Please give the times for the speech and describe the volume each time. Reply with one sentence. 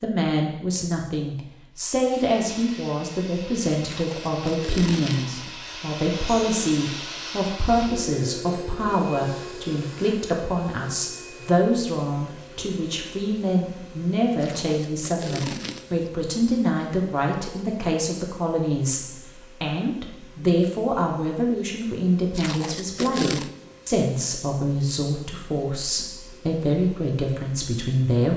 The speech can be heard from 0.0 to 28.3 s, at a steady volume.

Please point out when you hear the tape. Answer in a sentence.
The tape can be heard from 3.8 to 5.3 s, from 14.4 to 16.1 s and from 22.4 to 23.5 s.